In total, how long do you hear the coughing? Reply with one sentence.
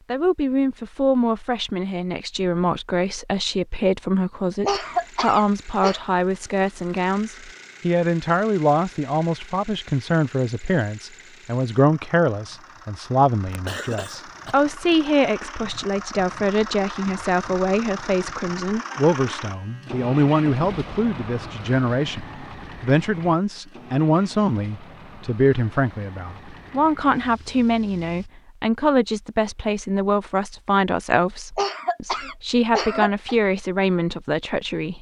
You can hear the coughing for 5 seconds altogether.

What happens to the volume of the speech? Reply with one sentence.
The volume of the speech stays about the same.